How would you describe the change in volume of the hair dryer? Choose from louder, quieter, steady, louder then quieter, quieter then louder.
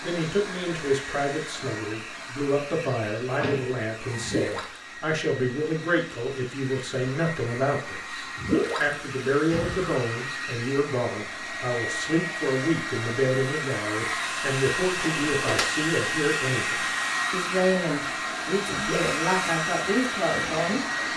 louder.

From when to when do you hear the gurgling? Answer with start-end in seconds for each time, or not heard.
4.2-4.8, 8.3-8.9, 18.6-19.2.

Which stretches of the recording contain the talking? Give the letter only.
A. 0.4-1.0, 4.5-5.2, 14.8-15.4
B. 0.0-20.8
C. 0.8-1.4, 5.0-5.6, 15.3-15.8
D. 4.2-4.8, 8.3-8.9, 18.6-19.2
B.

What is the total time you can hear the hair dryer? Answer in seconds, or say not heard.
21 s.